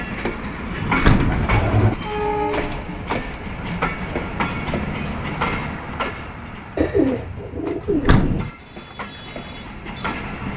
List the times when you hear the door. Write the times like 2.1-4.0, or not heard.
0.8-1.5, 7.8-8.5.